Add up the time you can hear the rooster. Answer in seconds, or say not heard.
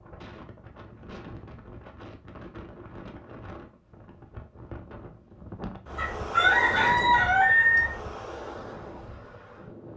2 s.